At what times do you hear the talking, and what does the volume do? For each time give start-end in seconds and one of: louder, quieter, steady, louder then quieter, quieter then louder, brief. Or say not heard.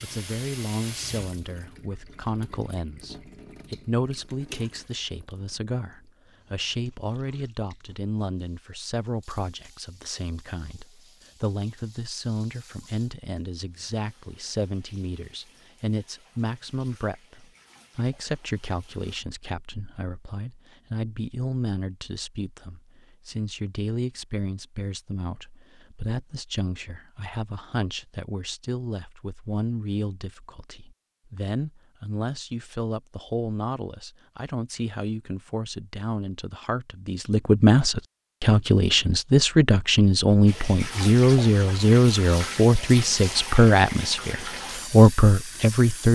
0.0-46.0 louder.